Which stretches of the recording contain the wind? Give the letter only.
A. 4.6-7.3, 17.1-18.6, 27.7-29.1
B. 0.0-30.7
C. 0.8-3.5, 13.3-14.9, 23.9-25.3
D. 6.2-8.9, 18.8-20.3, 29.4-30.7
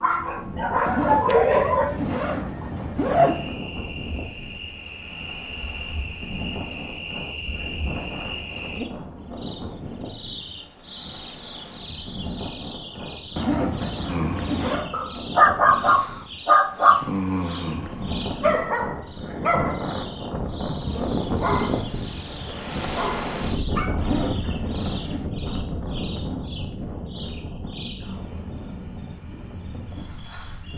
B.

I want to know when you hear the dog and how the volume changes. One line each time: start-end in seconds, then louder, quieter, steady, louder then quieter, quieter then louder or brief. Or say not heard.
0.0-1.9 brief
14.1-24.0 quieter.